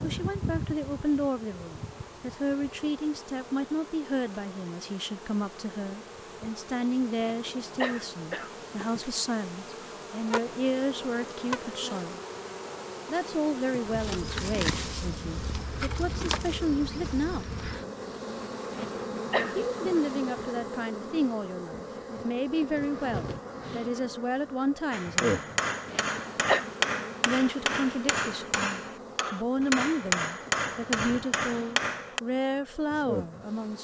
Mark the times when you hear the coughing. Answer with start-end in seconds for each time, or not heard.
7.2-8.7, 18.7-19.6, 25.9-26.6.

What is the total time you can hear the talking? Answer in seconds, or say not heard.
29 s.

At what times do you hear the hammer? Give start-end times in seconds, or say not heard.
24.9-32.2.